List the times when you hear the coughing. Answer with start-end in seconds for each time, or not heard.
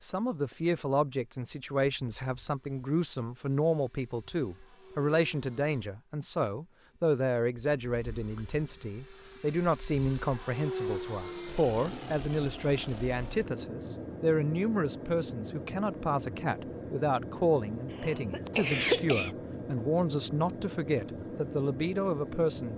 17.9-19.3.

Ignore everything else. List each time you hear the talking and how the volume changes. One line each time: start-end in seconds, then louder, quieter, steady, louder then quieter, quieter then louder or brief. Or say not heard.
0.0-22.7 steady.